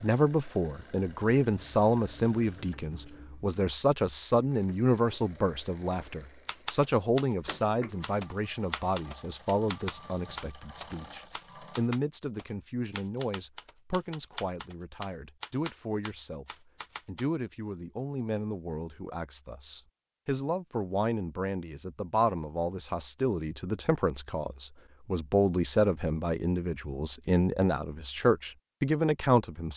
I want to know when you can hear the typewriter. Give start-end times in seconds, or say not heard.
6.5-17.2.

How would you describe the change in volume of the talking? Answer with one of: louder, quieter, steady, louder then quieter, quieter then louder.
quieter then louder.